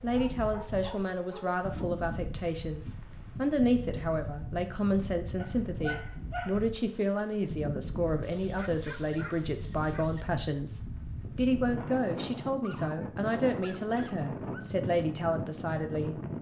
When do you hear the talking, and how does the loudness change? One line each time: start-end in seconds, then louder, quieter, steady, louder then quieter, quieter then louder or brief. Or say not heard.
0.0-16.2 steady.